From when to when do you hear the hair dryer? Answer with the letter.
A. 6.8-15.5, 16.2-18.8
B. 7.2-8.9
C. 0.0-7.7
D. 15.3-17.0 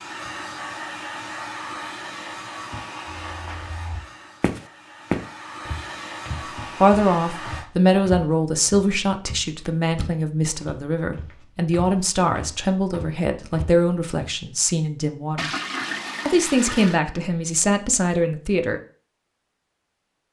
C.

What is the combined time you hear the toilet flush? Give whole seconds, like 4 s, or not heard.
2 s.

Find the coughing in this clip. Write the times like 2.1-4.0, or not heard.
not heard.